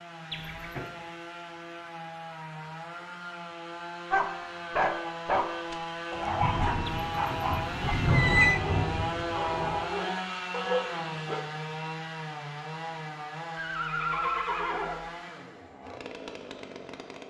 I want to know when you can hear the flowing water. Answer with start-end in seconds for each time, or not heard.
not heard.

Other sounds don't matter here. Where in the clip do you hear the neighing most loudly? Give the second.
8 s.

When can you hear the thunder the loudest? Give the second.
8 s.